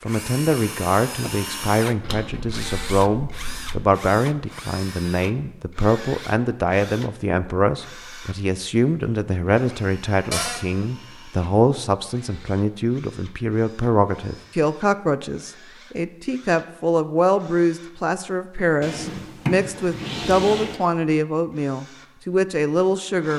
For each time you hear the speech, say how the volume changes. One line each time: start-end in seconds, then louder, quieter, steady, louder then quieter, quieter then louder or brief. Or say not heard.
0.0-23.3 steady.